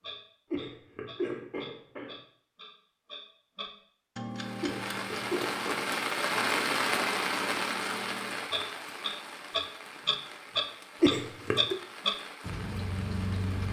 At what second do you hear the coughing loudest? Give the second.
11 s.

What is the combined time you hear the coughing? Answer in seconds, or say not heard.
4 s.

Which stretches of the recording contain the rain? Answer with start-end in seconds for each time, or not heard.
4.3-13.6.